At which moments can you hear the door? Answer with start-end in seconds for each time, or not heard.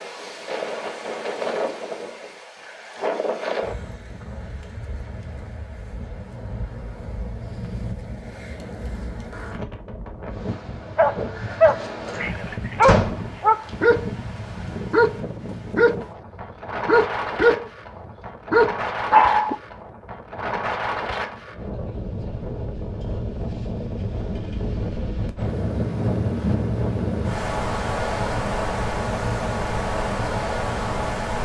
12.8-13.3.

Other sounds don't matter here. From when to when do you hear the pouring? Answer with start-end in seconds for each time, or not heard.
not heard.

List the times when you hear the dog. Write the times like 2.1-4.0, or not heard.
10.9-14.1, 14.9-16.1, 16.9-17.7, 18.5-19.6.